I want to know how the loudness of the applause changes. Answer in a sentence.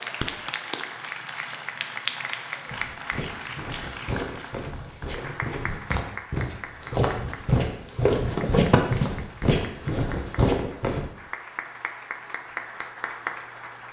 The loudness of the applause goes down, then up.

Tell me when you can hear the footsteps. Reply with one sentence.
You can hear the footsteps from 2.7 to 11.1 s.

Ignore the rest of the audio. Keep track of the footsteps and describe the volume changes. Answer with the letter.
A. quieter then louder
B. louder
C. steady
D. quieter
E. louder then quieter
B.